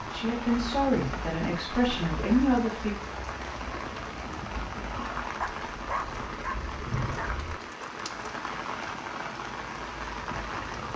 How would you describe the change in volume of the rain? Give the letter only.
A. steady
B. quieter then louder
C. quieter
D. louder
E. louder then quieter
A.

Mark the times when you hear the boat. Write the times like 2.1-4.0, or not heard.
not heard.